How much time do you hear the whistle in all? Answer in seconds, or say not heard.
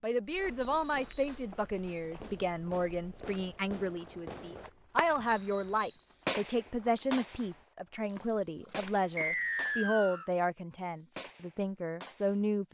3 s.